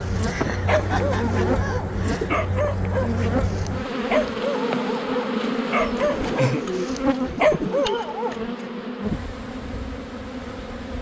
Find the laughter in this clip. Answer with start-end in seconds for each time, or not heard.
0.2-2.3, 6.0-6.7.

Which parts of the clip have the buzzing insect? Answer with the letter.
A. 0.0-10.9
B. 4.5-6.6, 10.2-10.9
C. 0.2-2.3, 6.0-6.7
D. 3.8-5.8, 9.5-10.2
A.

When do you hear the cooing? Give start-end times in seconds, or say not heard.
0.7-2.5, 6.0-8.0.